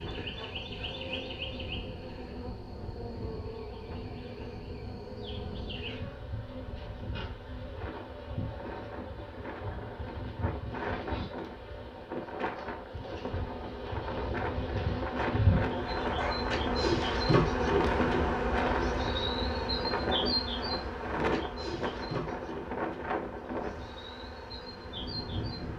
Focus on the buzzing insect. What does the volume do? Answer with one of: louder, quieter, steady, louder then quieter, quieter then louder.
louder then quieter.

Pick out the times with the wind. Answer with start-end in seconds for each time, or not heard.
0.0-25.7.